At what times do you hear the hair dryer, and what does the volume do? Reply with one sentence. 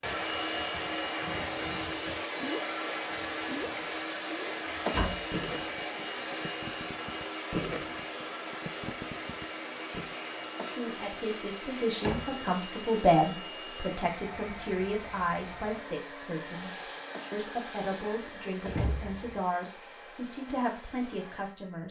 You can hear the hair dryer from 0.0 to 21.8 s, getting quieter.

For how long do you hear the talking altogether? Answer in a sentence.
You can hear the talking for 11 seconds altogether.